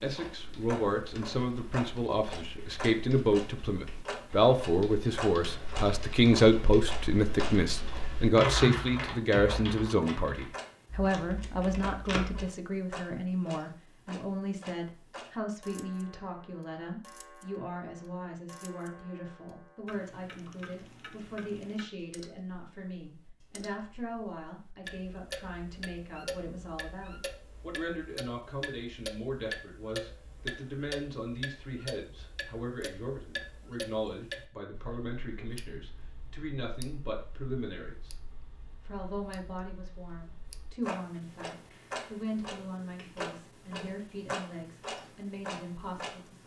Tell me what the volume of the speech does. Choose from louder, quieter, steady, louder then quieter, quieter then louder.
quieter.